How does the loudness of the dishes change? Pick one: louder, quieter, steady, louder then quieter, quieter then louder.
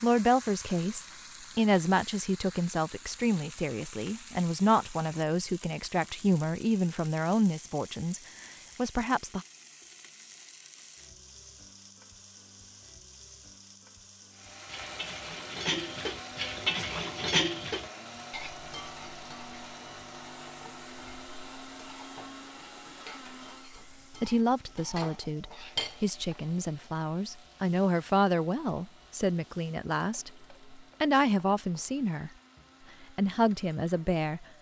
quieter then louder.